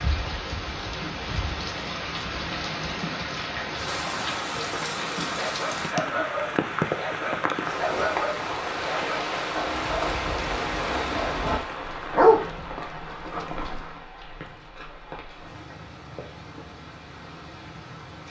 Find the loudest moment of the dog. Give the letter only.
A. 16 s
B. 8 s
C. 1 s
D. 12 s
D.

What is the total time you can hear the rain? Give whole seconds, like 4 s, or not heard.
18 s.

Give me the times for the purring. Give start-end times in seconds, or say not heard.
not heard.